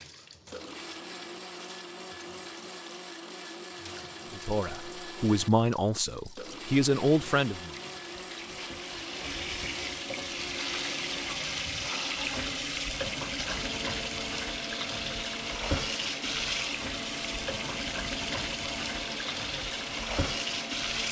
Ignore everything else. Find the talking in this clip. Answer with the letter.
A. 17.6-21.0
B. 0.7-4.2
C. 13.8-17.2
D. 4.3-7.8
D.